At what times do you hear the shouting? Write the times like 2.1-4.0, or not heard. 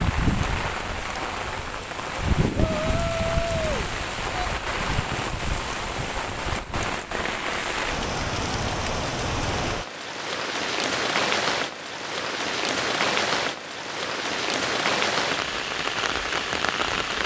2.5-4.5.